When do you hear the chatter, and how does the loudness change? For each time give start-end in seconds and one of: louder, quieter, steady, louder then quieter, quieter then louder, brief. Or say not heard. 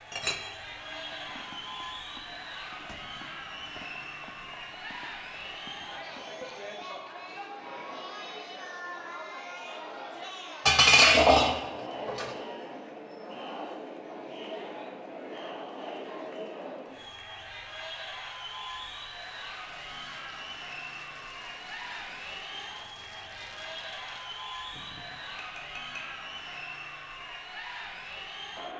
0.0-28.7 steady.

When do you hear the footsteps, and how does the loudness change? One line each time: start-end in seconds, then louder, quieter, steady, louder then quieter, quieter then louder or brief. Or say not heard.
not heard.